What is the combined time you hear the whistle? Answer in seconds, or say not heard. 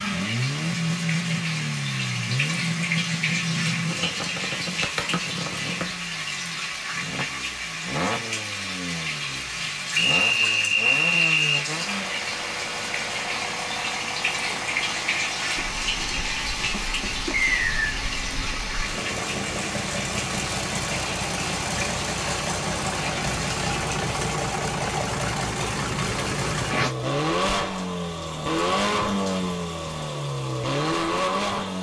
2 s.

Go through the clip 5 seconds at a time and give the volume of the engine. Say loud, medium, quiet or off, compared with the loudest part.
loud, medium, medium, medium, loud, loud, loud.